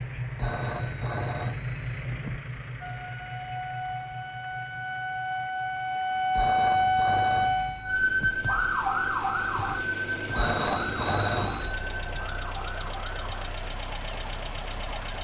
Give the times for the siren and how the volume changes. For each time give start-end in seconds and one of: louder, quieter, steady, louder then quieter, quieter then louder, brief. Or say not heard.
2.8-15.2 louder then quieter.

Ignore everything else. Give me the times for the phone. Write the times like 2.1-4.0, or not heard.
0.3-2.4, 6.3-8.3, 10.3-11.8.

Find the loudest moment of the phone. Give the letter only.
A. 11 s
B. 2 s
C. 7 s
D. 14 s
A.